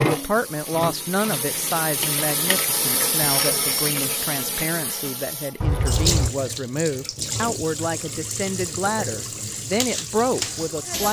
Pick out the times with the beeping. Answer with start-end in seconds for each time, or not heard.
3.2-3.9, 5.6-6.3.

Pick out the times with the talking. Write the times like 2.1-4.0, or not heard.
0.0-11.0.